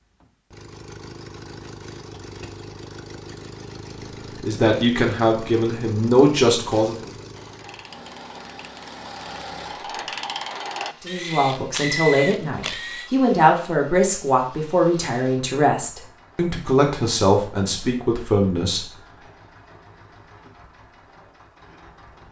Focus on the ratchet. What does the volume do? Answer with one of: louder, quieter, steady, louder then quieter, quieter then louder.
louder.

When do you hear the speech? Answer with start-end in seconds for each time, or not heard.
4.4-7.0, 11.0-18.9.